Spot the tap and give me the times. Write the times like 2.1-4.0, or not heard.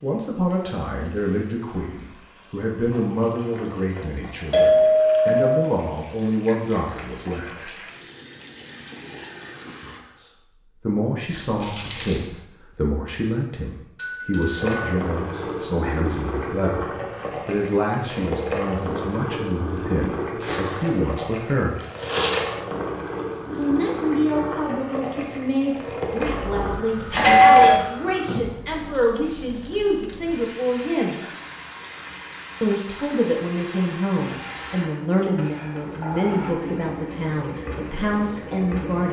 0.0-10.1, 14.6-39.0.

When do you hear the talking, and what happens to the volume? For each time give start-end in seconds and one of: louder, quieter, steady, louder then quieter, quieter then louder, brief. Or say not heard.
0.0-7.8 steady
10.2-21.8 steady
23.5-31.2 steady
32.6-39.0 steady.